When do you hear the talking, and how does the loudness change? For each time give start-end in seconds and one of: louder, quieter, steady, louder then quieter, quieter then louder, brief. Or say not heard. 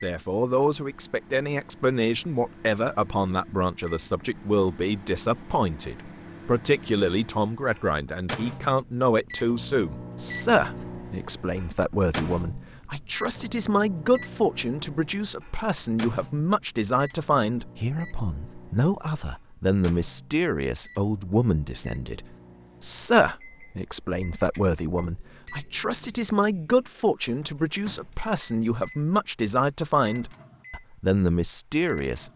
0.0-32.3 steady.